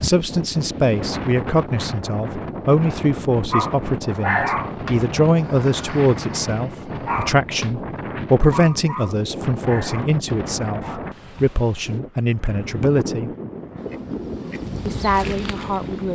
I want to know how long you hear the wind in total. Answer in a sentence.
You can hear the wind for 16 seconds altogether.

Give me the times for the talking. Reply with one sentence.
You can hear the talking from 0.0 to 13.3 s and from 14.8 to 16.1 s.